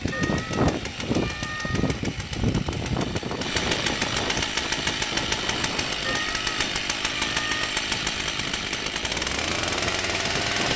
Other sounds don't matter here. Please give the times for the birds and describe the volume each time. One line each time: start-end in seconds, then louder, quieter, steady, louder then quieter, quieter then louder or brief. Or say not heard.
not heard.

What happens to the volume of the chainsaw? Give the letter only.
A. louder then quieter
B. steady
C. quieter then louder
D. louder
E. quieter
D.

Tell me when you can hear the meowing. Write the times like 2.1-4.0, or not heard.
0.1-1.9, 6.0-7.8.